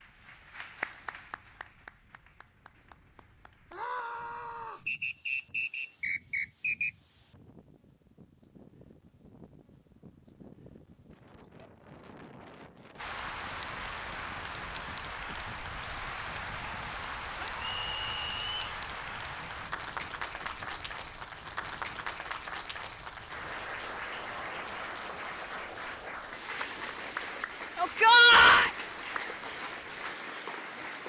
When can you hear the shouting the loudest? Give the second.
28 s.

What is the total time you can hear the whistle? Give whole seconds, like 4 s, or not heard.
3 s.